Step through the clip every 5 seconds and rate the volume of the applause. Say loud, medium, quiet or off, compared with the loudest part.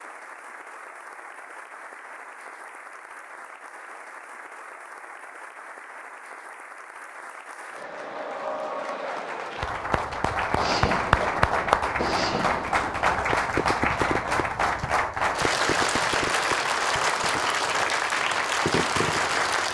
quiet, medium, loud, loud.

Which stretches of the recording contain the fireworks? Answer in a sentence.
You can hear the fireworks from 10.6 to 19.6 s.